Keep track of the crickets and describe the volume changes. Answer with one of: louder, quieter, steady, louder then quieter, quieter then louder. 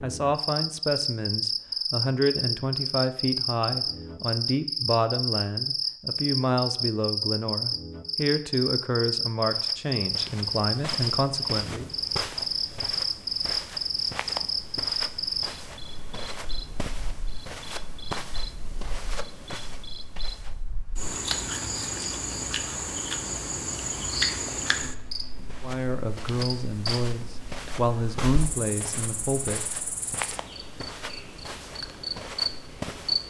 quieter.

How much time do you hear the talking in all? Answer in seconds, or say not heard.
16 s.